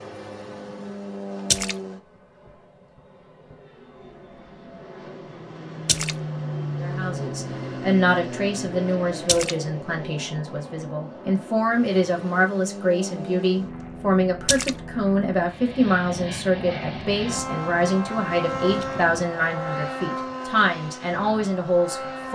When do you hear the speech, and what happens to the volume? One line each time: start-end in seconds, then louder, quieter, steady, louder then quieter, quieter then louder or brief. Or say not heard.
6.8-22.2 steady.